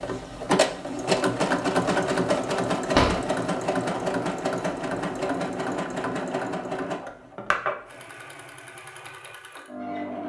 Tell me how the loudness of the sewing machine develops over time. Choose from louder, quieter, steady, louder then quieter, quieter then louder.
quieter.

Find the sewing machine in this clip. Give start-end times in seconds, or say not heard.
0.0-10.2.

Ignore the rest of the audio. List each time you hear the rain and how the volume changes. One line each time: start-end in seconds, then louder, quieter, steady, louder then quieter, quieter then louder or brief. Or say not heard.
not heard.